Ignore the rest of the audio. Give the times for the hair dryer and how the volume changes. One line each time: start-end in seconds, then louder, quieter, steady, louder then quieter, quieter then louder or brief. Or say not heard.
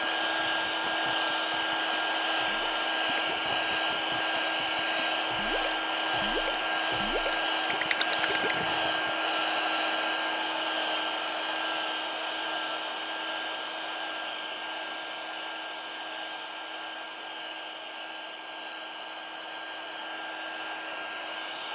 0.0-21.7 quieter.